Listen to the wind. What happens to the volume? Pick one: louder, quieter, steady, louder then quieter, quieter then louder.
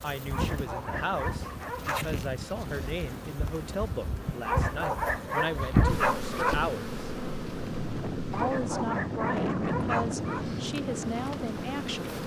louder.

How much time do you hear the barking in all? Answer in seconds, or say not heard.
6 s.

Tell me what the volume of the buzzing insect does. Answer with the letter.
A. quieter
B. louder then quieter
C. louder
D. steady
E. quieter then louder
B.